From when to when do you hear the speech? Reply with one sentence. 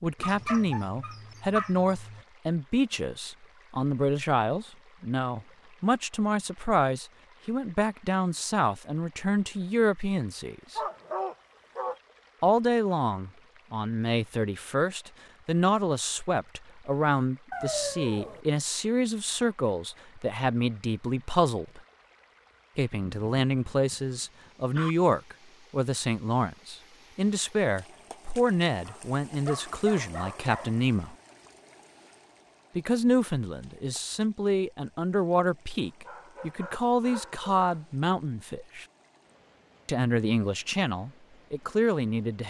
The speech can be heard from 0.0 to 10.8 s, from 12.4 to 21.8 s, from 22.8 to 31.1 s, from 32.8 to 38.9 s and from 39.9 to 42.4 s.